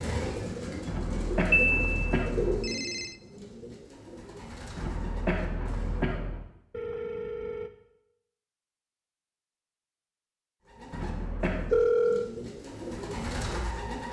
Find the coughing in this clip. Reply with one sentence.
You can hear the coughing from 0.8 to 2.7 s, from 4.8 to 6.5 s and from 10.9 to 11.8 s.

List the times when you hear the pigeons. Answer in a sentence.
You can hear the pigeons from 0.0 to 6.2 s and from 10.7 to 14.0 s.